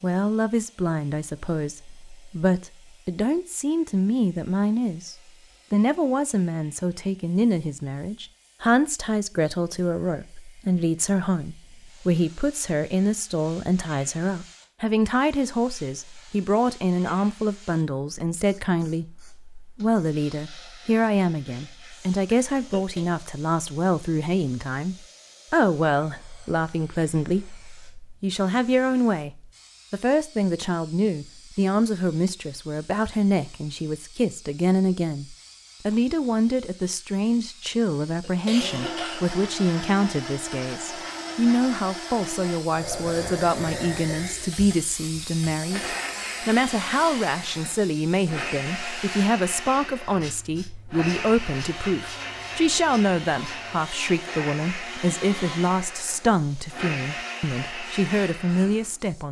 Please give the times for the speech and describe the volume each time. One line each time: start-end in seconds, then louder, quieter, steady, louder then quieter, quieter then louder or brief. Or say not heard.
0.0-59.2 steady.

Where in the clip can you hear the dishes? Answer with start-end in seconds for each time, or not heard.
not heard.